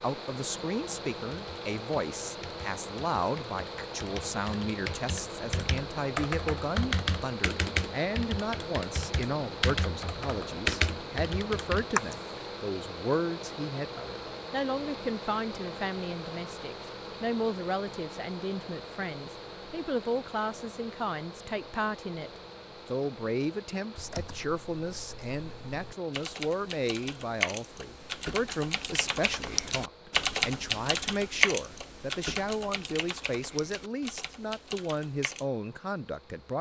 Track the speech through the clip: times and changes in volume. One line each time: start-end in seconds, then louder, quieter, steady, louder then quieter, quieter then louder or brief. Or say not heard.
0.0-36.5 steady.